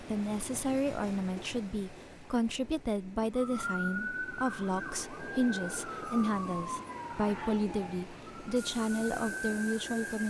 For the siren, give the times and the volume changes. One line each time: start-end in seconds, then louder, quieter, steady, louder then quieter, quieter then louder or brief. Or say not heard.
3.4-10.2 quieter then louder.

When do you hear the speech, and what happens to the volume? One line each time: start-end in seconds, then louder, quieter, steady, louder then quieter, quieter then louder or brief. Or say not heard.
0.0-10.2 steady.